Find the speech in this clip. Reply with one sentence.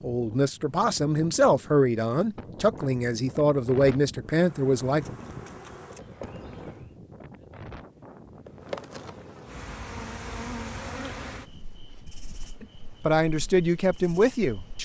The speech can be heard from 0.0 to 5.1 s and from 12.6 to 14.8 s.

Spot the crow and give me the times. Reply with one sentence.
The crow can't be heard in this clip.